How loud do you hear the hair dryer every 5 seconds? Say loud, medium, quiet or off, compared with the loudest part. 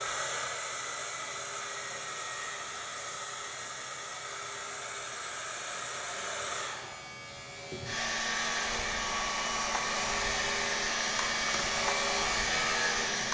medium, loud, loud.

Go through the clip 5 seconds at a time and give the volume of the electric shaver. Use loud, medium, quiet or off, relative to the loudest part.
quiet, medium, loud.